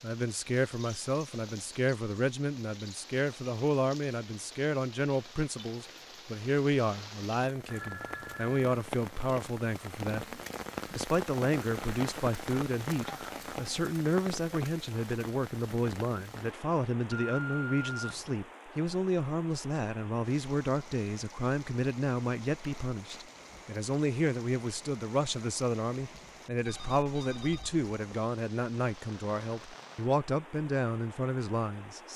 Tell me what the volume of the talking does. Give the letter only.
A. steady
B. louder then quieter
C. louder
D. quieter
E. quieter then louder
A.